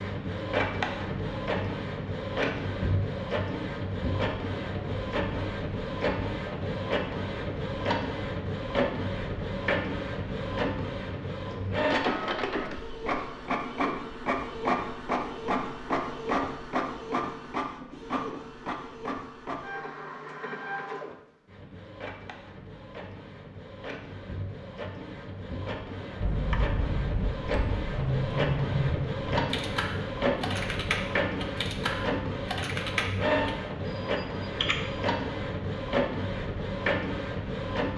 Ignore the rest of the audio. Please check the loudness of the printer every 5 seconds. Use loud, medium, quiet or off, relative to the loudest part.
loud, loud, loud, loud, medium, loud, loud, loud.